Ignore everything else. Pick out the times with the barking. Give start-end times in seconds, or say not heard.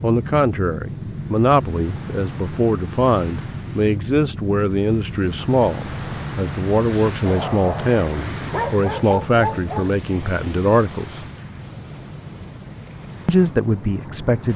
7.2-9.9.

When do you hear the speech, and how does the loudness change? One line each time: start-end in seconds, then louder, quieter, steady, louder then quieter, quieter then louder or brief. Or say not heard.
0.0-11.2 steady
13.2-14.5 brief.